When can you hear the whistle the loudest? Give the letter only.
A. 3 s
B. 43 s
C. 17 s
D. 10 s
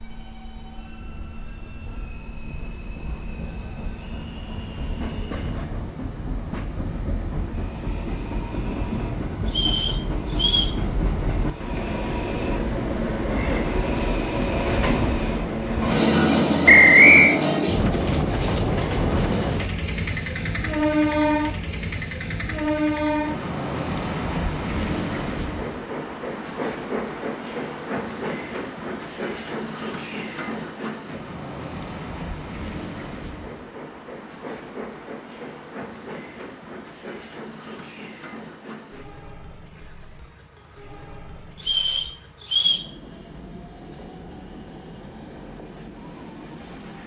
C.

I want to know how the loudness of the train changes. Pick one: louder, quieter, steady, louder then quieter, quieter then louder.
louder then quieter.